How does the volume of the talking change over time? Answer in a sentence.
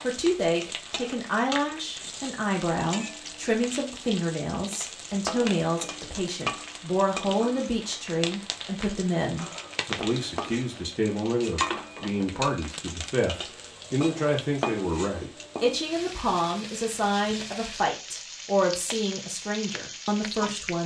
The volume of the talking stays about the same.